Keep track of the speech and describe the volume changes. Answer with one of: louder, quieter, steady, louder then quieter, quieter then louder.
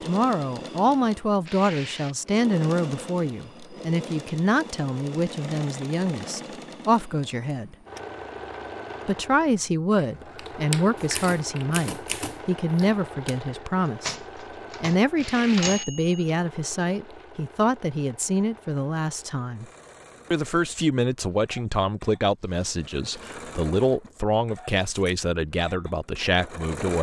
steady.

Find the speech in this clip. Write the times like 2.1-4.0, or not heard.
0.0-7.8, 9.1-14.2, 14.8-19.6, 20.3-26.9.